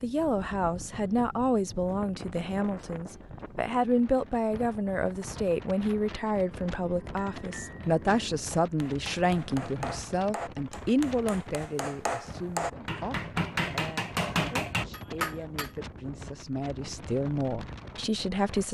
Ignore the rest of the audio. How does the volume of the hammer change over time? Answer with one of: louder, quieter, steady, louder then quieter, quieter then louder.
louder.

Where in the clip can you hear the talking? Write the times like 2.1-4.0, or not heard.
0.0-18.6.